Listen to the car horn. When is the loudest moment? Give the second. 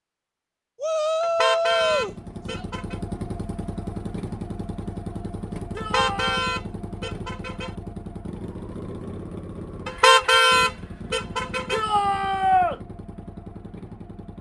10 s.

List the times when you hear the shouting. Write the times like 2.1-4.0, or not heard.
0.8-2.6, 5.8-6.4, 11.7-12.8.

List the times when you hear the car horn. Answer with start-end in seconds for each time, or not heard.
1.2-3.0, 5.8-7.7, 9.8-11.8.